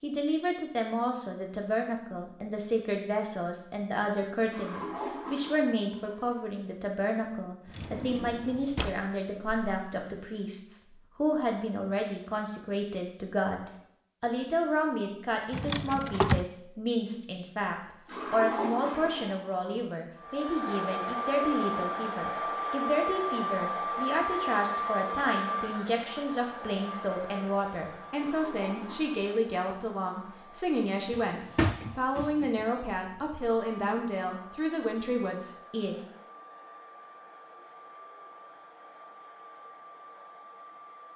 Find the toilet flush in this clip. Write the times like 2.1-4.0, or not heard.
4.5-6.3, 18.1-19.7, 28.1-29.2.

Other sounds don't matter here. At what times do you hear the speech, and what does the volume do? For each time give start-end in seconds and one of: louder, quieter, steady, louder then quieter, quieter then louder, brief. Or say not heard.
0.0-36.0 steady.